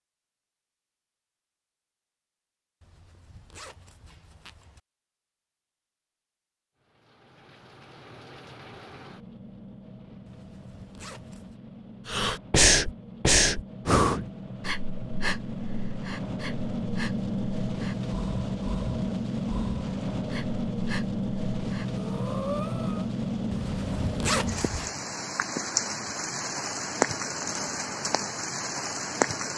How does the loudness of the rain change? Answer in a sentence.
The loudness of the rain goes up.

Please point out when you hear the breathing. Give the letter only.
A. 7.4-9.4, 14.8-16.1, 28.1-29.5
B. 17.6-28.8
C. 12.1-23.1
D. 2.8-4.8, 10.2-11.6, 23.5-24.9
C.